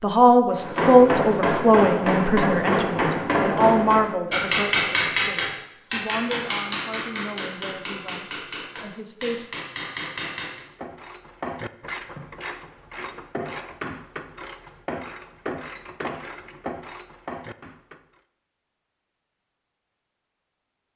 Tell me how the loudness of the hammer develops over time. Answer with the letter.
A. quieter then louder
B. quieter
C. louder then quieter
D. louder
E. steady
B.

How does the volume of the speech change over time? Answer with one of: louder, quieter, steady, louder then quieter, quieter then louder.
quieter.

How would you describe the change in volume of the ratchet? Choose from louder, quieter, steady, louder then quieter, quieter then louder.
steady.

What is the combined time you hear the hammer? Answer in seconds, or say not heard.
10 s.